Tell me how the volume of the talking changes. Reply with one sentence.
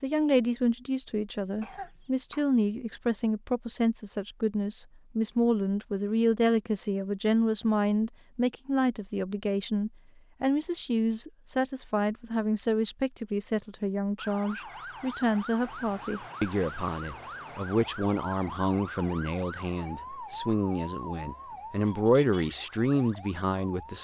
The volume of the talking stays about the same.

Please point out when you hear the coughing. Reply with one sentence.
You can hear the coughing from 1.6 to 2.5 s.